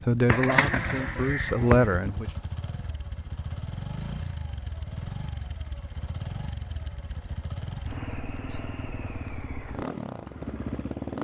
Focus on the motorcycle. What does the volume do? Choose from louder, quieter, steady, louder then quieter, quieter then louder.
steady.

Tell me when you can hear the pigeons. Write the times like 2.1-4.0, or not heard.
0.2-2.0.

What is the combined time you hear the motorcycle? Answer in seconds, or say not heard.
11 s.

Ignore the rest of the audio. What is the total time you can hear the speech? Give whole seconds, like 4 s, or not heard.
2 s.